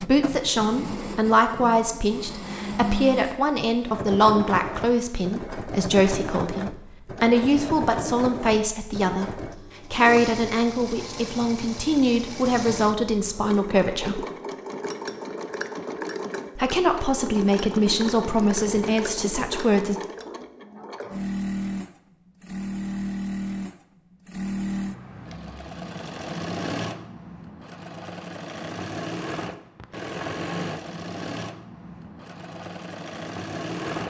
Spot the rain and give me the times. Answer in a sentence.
You can't hear the rain here.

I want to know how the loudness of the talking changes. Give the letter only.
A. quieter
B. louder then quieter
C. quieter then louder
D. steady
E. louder
D.